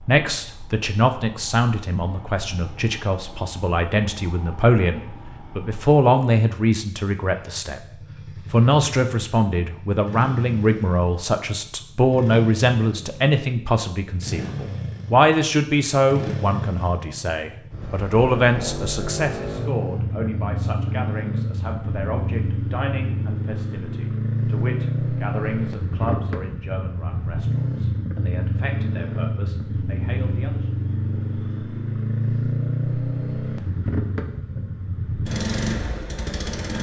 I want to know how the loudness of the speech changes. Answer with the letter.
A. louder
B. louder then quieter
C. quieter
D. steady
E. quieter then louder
C.